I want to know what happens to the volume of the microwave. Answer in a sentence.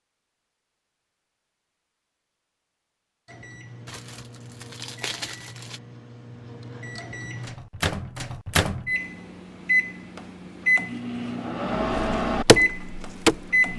The loudness of the microwave goes up.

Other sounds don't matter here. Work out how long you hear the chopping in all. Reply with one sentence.
You can hear the chopping for 2 seconds altogether.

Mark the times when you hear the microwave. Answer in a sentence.
The microwave can be heard from 3.2 to 13.7 s.